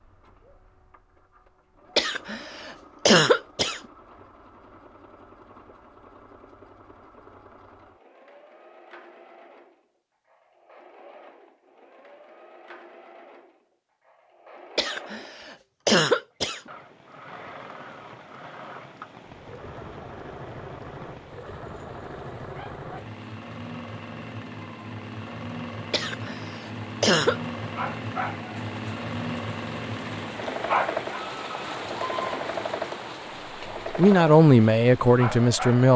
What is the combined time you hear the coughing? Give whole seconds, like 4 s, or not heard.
5 s.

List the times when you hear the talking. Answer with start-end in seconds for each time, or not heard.
33.9-35.9.